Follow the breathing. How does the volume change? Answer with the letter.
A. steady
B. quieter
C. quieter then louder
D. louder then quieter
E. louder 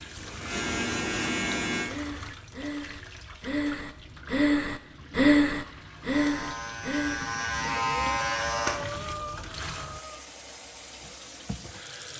D.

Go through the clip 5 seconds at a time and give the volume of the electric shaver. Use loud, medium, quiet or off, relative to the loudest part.
loud, loud, off.